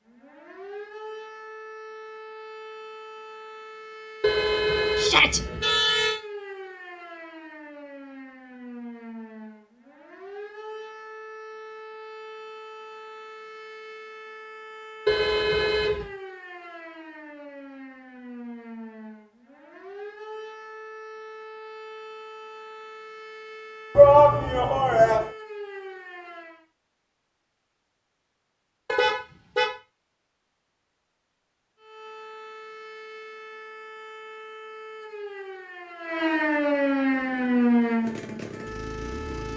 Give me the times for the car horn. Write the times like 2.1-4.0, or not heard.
4.2-6.2, 15.1-16.1, 28.9-29.8.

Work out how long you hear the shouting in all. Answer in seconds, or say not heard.
2 s.